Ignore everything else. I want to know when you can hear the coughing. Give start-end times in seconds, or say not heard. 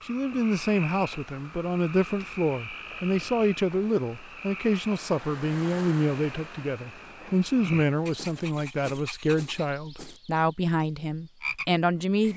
not heard.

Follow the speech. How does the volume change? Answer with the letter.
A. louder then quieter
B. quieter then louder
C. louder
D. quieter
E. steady
E.